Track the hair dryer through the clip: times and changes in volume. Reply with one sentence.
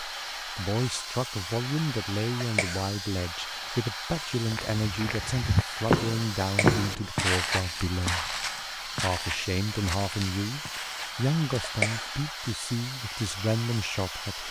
The hair dryer can be heard from 0.0 to 14.4 s, at a steady volume.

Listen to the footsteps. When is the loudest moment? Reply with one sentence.
The volume of the footsteps peaks at 7 seconds.